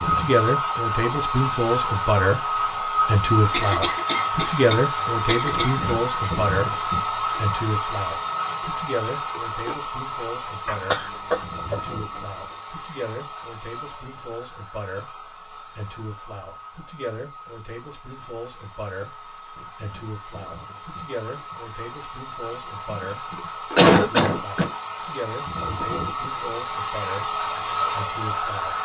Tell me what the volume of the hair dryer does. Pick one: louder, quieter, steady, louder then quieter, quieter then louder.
quieter then louder.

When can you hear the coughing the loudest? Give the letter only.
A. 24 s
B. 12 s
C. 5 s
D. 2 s
A.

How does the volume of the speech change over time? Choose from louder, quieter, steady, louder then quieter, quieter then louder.
quieter.